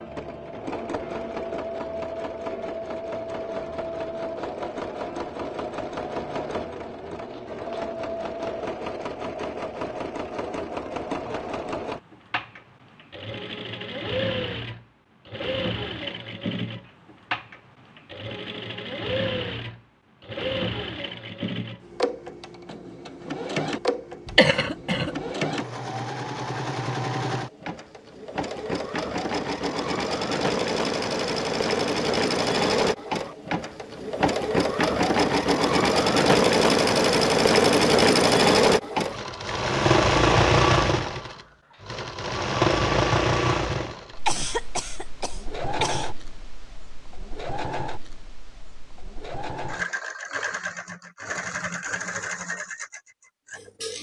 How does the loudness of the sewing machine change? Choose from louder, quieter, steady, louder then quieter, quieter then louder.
louder then quieter.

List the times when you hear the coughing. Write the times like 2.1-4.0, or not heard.
24.2-25.1, 44.2-46.1.